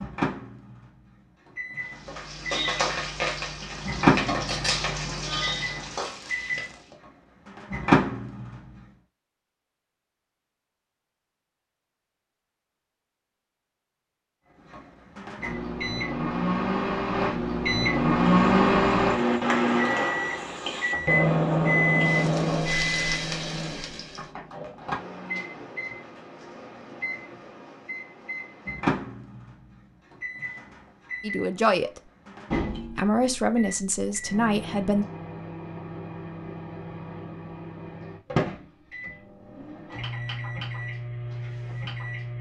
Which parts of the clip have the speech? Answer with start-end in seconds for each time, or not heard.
31.2-32.0, 32.9-35.0.